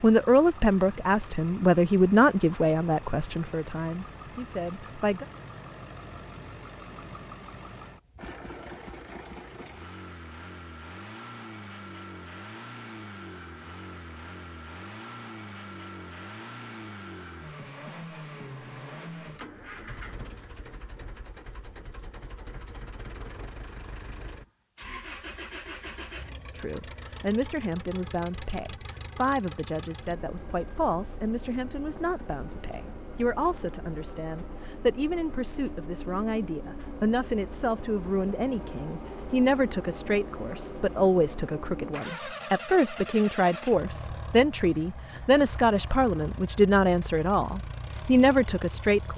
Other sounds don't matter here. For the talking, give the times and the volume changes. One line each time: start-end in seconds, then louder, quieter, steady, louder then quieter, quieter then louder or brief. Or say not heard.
0.0-5.2 quieter
26.6-49.1 louder.